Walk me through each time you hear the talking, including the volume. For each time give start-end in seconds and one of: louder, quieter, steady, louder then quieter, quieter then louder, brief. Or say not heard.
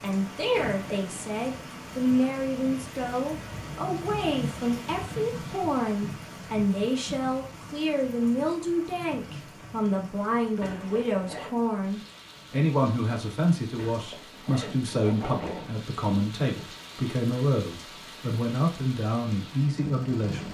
0.0-20.4 steady.